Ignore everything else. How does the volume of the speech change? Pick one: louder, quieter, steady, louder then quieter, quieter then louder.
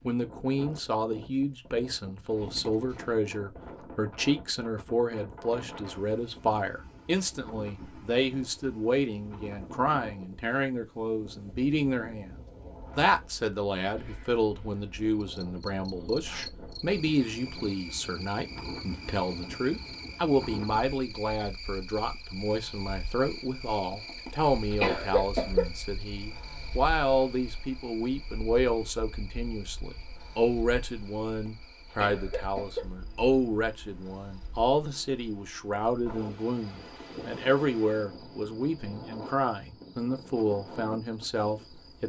steady.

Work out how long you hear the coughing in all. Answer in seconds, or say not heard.
4 s.